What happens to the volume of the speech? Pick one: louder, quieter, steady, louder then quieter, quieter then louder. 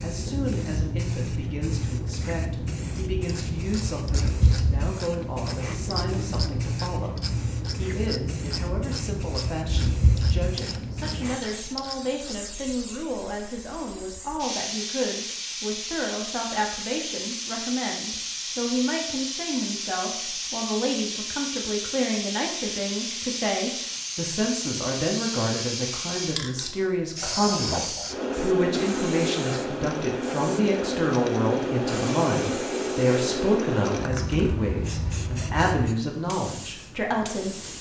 louder.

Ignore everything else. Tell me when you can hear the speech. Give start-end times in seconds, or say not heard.
0.0-37.6.